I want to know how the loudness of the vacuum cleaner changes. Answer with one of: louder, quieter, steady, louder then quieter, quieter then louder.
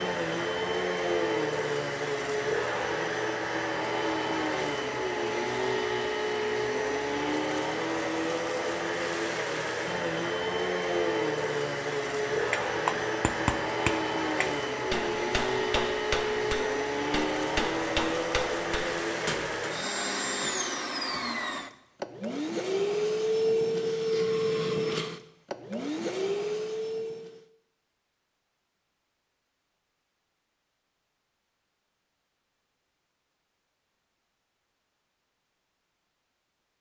steady.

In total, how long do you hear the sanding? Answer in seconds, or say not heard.
not heard.